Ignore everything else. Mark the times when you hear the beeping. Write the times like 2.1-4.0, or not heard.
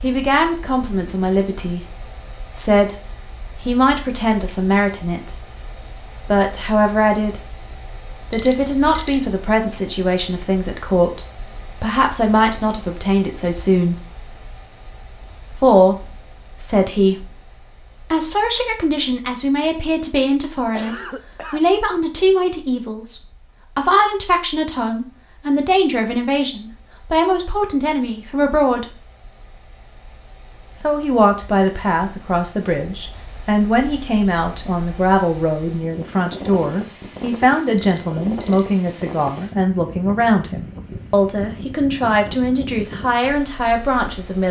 8.3-9.2, 37.8-38.7.